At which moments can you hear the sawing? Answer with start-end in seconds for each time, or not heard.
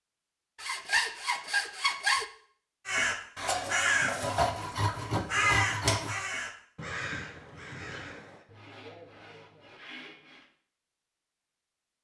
0.6-2.2, 4.2-6.2, 8.4-10.4.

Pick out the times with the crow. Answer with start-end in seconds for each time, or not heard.
2.9-8.4.